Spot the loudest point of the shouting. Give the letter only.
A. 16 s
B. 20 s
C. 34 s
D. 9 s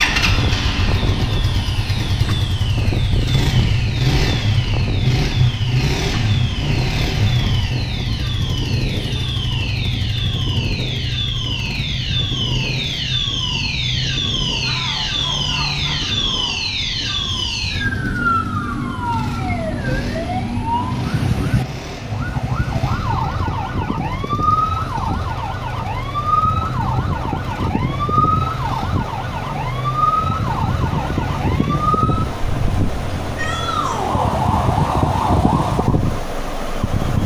C.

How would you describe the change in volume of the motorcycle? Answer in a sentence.
The loudness of the motorcycle goes down.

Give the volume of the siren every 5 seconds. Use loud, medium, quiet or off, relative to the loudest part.
medium, medium, loud, loud, loud, loud, loud, loud.